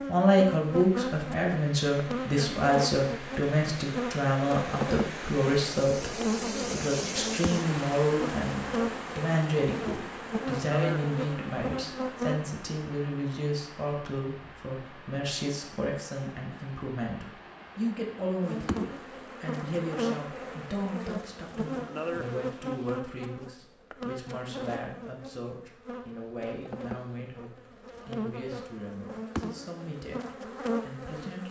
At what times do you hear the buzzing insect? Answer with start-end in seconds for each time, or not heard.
0.0-12.4, 18.4-31.4.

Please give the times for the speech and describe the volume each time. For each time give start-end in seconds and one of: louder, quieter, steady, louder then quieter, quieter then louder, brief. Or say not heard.
0.1-31.4 quieter.